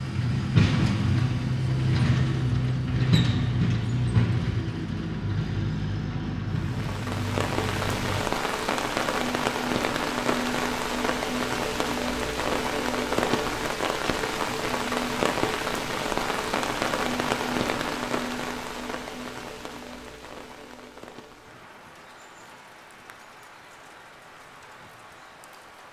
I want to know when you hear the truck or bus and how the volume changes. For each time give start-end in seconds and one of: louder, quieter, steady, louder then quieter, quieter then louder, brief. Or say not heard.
0.0-8.2 quieter.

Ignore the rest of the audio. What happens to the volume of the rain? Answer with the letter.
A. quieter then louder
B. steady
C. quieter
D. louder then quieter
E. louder
C.